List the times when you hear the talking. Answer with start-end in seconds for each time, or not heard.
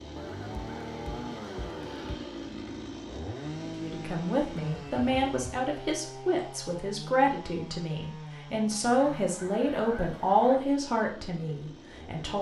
3.6-12.3.